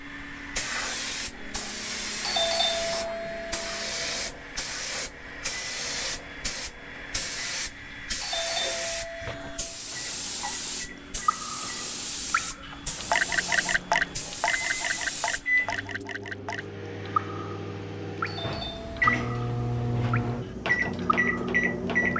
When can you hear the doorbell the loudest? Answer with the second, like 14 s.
3 s.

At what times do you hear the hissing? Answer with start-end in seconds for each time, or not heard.
0.0-16.1.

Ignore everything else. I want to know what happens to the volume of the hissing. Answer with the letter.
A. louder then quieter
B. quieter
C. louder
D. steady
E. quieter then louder
D.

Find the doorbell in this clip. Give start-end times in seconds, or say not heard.
2.2-4.3, 8.2-9.8, 18.2-19.1.